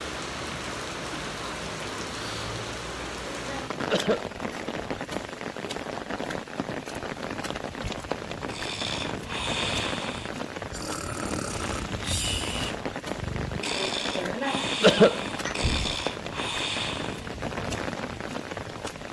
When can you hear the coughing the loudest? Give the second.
15 s.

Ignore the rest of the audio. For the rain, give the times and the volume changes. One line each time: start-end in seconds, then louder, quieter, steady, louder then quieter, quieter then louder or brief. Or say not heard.
0.0-19.0 steady.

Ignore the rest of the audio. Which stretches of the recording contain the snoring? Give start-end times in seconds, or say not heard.
8.5-17.3.